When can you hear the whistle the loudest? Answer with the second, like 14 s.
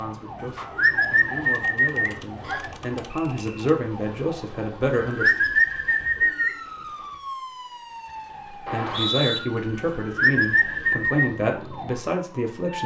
9 s.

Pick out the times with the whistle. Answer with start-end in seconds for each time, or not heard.
2.4-3.5, 8.7-9.4.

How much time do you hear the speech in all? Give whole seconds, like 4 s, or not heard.
10 s.